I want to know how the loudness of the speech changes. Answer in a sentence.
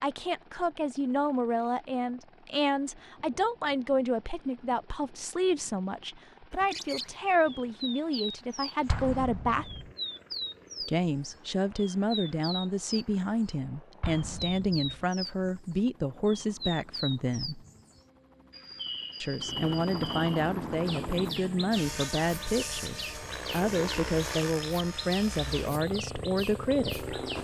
The loudness of the speech stays about the same.